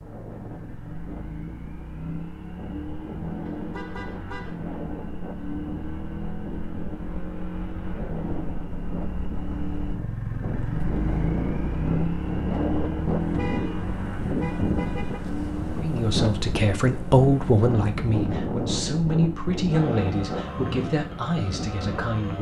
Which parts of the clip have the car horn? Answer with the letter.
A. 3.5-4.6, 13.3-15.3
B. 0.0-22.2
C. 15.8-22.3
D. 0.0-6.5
A.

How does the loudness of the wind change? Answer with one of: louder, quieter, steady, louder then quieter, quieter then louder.
louder.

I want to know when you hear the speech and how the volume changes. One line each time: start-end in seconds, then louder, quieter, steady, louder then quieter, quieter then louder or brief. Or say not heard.
15.8-22.3 quieter.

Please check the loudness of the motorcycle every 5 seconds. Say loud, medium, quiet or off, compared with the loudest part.
medium, medium, loud, medium, medium.